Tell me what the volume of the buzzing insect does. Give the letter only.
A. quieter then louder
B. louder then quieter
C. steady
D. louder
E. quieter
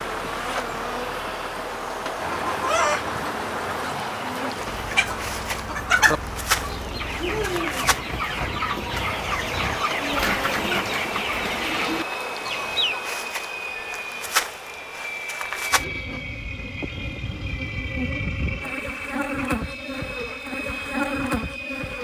C.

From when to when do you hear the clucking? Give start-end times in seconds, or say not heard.
2.4-13.0.